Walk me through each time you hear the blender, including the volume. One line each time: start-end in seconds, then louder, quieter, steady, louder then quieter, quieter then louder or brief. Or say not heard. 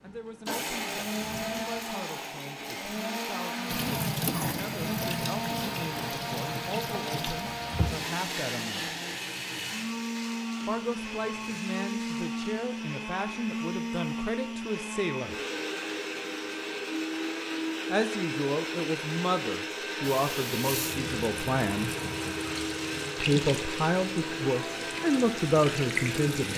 0.0-26.5 steady.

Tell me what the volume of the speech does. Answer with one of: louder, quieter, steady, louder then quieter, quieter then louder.
louder.